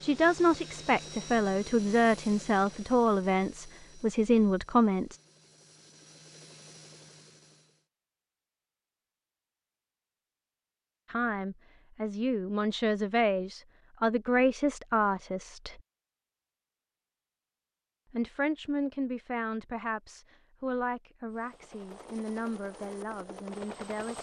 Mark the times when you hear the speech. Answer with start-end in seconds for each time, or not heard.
0.0-5.2, 11.1-15.8, 18.1-24.1.